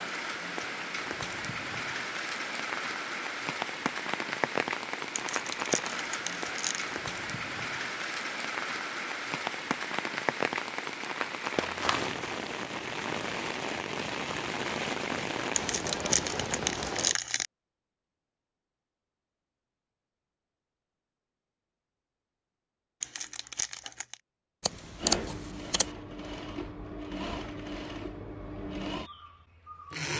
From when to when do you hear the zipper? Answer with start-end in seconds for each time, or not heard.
not heard.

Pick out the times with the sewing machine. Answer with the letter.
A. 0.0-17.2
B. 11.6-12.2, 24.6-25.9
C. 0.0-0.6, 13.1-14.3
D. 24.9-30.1
D.